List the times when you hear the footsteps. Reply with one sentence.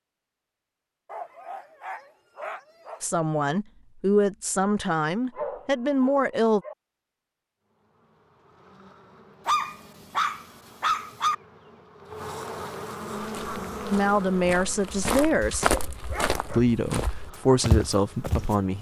The footsteps can be heard from 13.2 to 18.7 s.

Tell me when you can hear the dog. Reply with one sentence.
You can hear the dog from 1.1 to 3.0 s, from 5.3 to 6.8 s, from 9.4 to 11.3 s and from 15.1 to 16.6 s.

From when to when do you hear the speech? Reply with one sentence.
You can hear the speech from 3.0 to 6.6 s, from 13.9 to 15.8 s and from 16.5 to 18.7 s.